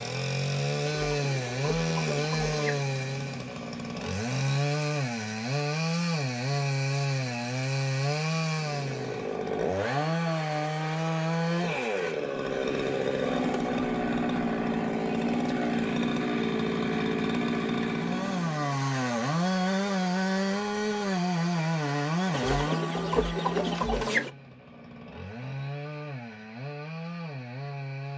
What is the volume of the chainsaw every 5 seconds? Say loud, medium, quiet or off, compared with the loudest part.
loud, loud, loud, loud, loud, medium.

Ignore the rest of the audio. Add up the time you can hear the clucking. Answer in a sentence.
You can hear the clucking for 4 seconds altogether.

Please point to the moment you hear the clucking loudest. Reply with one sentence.
The loudest moment of the clucking is at 24 seconds.